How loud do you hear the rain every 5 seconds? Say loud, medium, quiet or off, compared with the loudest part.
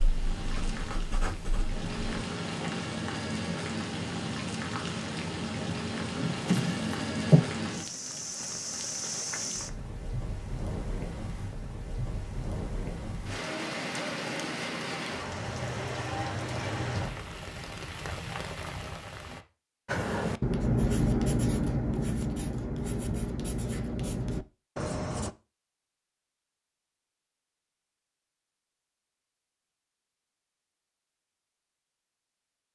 loud, loud, loud, loud, off, off, off.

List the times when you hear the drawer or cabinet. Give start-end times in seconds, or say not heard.
6.2-7.5.